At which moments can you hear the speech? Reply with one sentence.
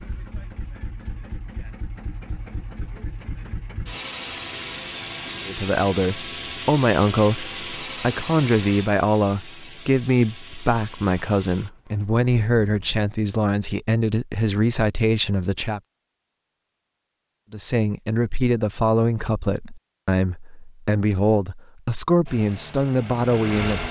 The speech can be heard from 5.5 to 15.8 s and from 17.5 to 23.8 s.